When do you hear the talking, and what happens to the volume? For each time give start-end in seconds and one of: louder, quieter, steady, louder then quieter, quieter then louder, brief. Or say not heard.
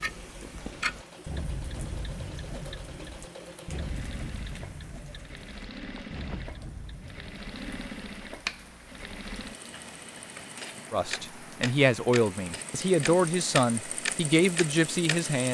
10.9-15.4 steady.